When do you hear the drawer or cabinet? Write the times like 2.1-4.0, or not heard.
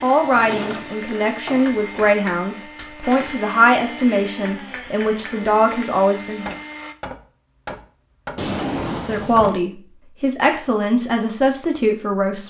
0.2-1.6, 8.3-9.6.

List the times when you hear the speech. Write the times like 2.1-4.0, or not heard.
0.0-6.5, 9.1-12.4.